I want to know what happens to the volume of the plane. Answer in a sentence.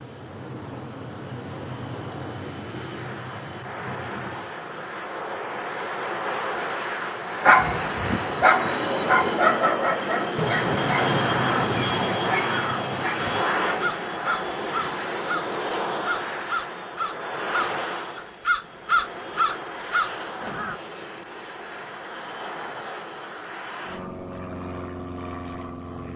The loudness of the plane goes up, then down.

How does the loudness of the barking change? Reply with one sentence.
The loudness of the barking goes down.